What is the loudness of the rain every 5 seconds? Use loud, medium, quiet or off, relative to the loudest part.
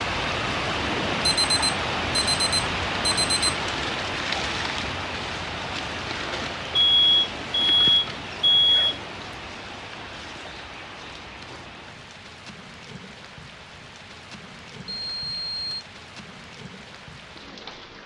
loud, medium, quiet, quiet.